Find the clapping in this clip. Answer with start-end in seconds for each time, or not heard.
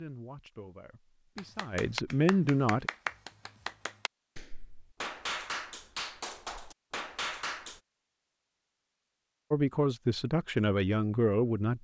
1.4-7.8.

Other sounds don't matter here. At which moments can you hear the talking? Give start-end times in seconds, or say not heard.
0.0-2.9, 9.5-11.7.